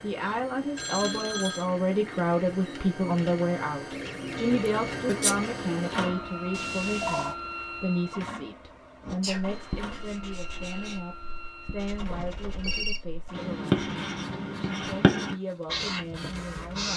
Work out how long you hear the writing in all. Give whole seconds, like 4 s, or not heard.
8 s.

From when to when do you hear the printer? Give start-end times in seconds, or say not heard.
0.0-16.9.